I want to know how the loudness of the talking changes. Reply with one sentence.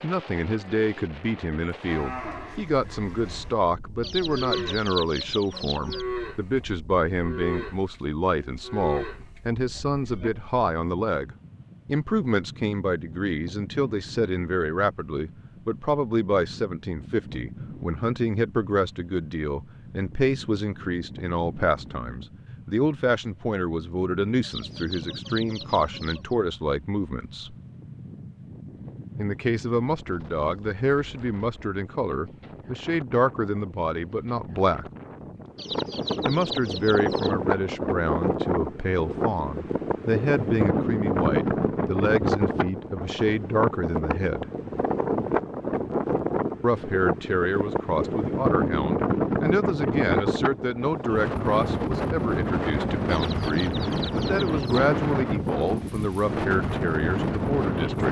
The volume of the talking stays about the same.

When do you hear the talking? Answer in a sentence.
The talking can be heard from 0.0 to 27.6 s, from 29.1 to 34.9 s, from 36.2 to 44.5 s and from 46.6 to 58.0 s.